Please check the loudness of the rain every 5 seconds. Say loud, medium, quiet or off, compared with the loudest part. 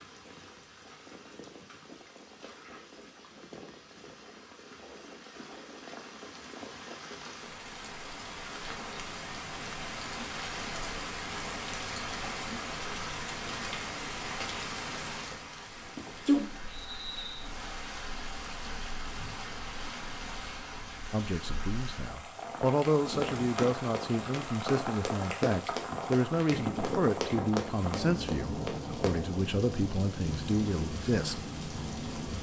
quiet, medium, loud, loud, loud, loud, loud.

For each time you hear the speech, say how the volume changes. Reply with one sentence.
You can hear the speech from 21.1 to 31.4 s, at a steady volume.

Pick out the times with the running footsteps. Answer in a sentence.
You can hear the running footsteps from 23.1 to 29.2 s.